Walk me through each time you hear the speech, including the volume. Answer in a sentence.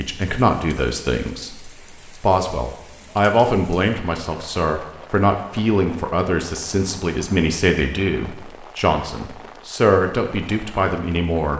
The speech can be heard from 0.0 to 11.5 s, at a steady volume.